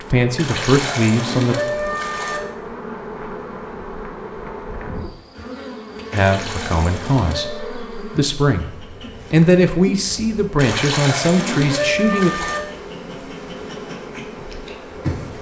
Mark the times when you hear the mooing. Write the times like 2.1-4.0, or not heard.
0.3-2.4, 6.2-7.7, 10.6-12.6.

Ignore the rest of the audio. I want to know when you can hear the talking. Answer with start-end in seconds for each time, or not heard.
0.0-1.6, 6.1-12.3.